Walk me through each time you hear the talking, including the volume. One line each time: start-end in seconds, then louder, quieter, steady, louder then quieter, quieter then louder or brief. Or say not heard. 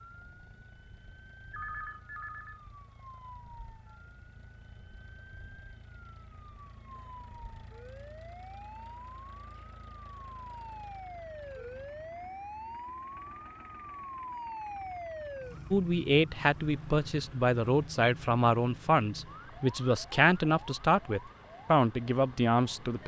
15.7-23.0 steady.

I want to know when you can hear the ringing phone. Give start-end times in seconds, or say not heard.
1.5-2.6.